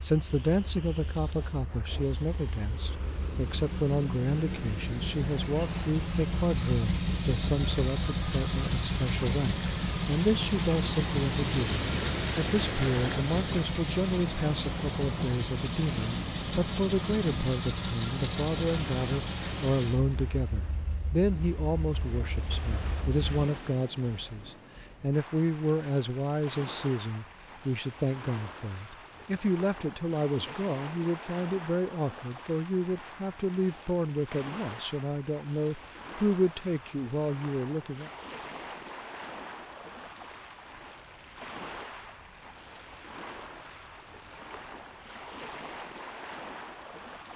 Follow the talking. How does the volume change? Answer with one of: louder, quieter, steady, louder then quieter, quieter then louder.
steady.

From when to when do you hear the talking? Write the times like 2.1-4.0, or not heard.
0.0-38.1.